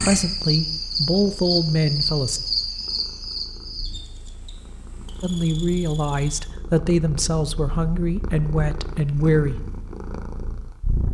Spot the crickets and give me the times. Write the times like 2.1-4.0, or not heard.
0.0-6.5.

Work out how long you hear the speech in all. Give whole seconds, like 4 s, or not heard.
7 s.